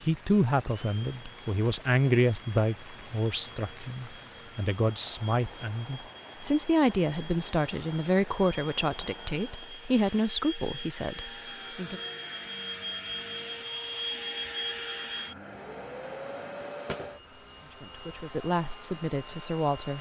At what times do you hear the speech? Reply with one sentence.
You can hear the speech from 0.0 to 12.0 s and from 17.6 to 19.9 s.